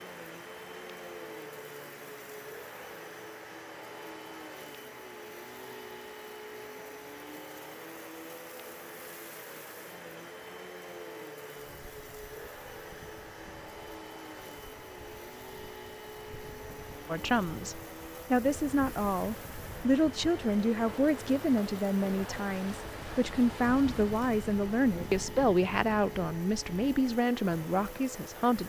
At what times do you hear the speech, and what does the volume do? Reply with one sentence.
The speech can be heard from 17.1 to 28.6 s, at a steady volume.